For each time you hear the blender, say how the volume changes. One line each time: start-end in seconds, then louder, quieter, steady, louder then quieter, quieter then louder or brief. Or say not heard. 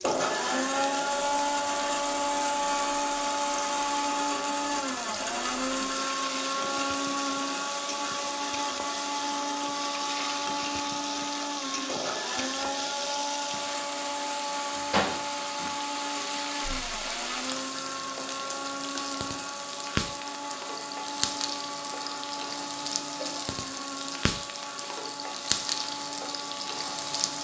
0.0-27.3 quieter.